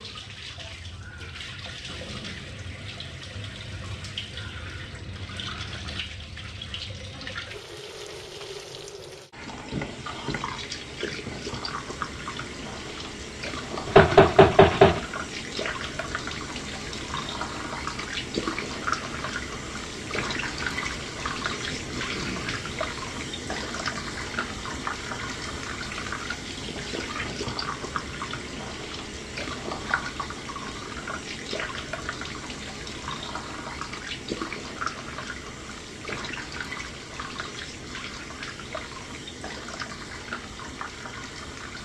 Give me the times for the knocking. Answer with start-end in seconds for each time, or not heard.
13.8-15.1.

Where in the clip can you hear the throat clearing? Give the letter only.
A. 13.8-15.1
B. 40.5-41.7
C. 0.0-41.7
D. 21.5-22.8
D.